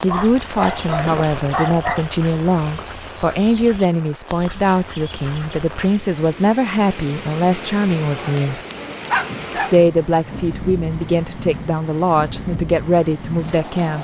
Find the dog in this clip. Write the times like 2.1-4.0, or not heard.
0.1-2.1, 8.2-9.8.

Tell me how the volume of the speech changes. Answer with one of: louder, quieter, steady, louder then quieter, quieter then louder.
steady.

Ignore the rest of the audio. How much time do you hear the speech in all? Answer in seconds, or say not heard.
13 s.